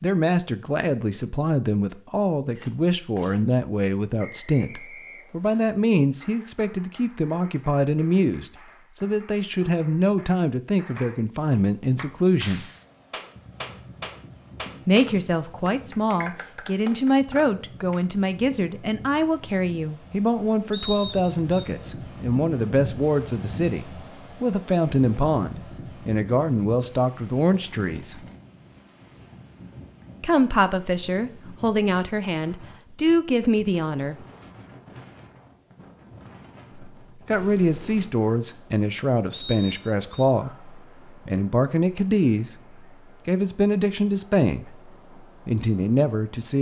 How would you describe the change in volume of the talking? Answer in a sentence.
The volume of the talking stays about the same.